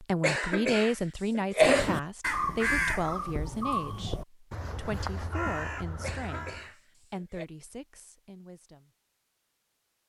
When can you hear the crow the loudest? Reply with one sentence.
The volume of the crow peaks at 3 seconds.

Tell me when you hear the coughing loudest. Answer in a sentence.
The volume of the coughing peaks at 2 seconds.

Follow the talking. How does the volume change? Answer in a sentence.
The volume of the talking goes down.